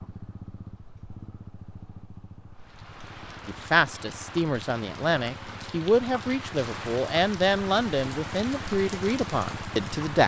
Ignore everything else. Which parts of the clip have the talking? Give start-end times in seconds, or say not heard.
3.5-10.2.